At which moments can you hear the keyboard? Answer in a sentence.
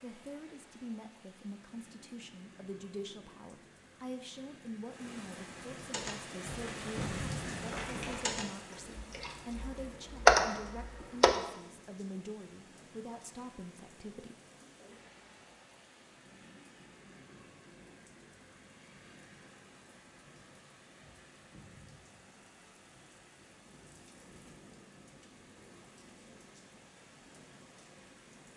The keyboard can be heard from 5.9 to 11.3 s.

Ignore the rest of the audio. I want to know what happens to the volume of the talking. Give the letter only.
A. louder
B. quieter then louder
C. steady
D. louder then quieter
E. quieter
C.